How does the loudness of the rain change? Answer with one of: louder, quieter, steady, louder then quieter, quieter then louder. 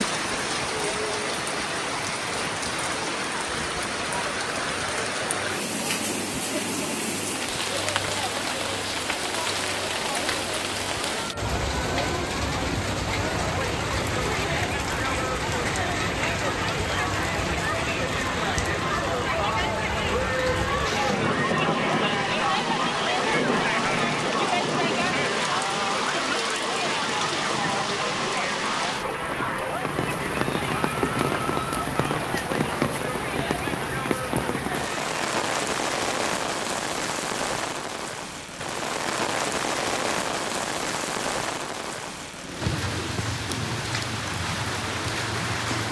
steady.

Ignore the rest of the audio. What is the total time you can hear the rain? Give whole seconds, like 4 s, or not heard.
46 s.